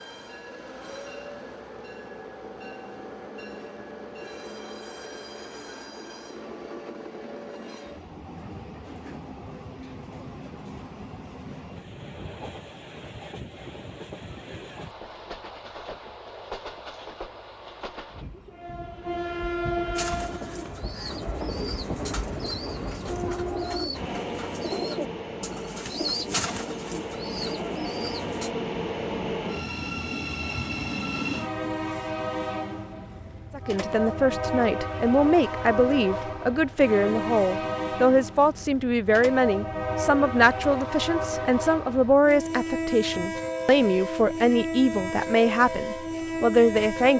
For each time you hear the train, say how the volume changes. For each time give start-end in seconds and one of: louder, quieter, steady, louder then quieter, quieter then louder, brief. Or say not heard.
0.0-47.1 louder.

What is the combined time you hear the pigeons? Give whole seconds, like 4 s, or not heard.
9 s.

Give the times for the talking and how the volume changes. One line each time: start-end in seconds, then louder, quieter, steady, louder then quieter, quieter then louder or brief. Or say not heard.
33.5-47.1 steady.